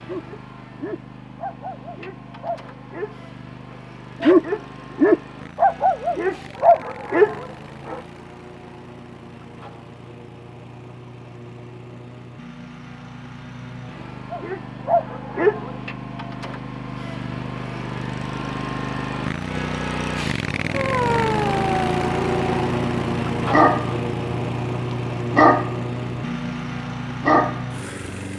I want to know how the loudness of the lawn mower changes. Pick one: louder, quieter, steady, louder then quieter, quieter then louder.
louder.